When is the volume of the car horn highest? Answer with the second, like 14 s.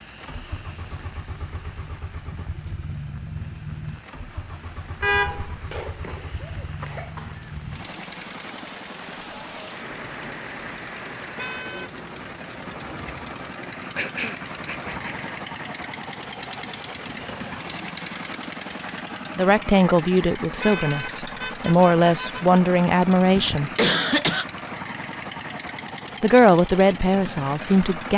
5 s.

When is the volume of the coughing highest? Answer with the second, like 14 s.
24 s.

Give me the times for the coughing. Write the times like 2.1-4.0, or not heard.
5.7-7.3, 13.9-15.3, 23.4-24.4.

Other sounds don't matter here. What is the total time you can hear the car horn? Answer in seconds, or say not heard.
3 s.